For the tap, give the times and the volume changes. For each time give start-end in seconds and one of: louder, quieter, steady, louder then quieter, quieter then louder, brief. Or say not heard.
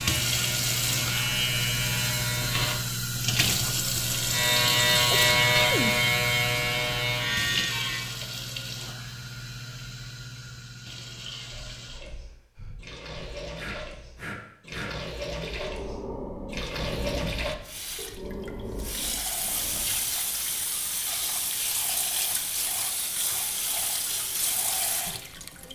0.0-25.7 quieter then louder.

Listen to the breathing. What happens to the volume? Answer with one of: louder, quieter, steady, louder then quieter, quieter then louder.
steady.